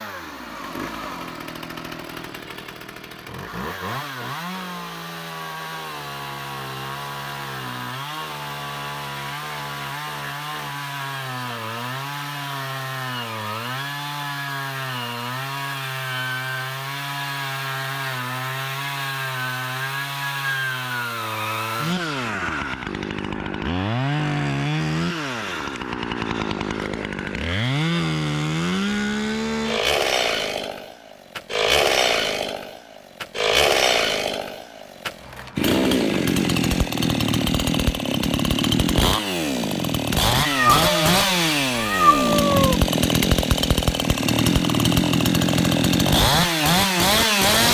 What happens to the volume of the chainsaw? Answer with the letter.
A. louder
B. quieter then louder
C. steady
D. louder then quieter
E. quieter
A.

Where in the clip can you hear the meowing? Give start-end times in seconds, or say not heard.
40.3-42.8.